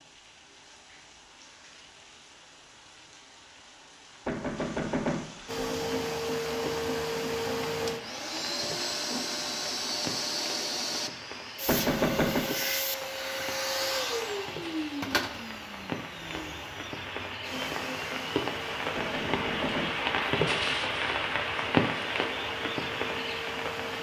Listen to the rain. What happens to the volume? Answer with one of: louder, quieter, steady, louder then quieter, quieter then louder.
louder.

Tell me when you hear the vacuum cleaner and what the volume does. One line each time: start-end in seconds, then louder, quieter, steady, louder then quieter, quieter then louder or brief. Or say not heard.
5.5-23.9 quieter.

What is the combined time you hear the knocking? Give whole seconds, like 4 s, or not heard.
3 s.